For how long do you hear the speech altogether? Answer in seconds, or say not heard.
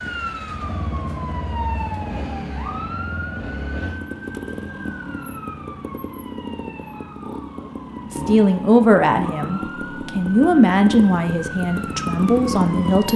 5 s.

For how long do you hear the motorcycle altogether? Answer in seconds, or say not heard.
13 s.